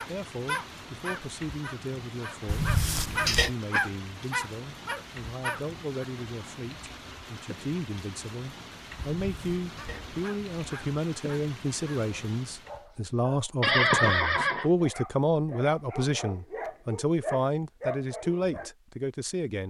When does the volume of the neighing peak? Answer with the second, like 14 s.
14 s.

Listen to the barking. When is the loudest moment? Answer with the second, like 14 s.
4 s.